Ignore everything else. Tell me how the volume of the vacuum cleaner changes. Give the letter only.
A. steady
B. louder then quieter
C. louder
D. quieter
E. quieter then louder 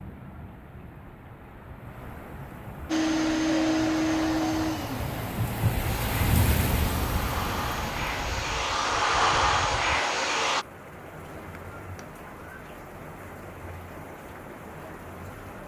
E.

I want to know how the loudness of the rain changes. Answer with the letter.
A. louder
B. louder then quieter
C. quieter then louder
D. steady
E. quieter
B.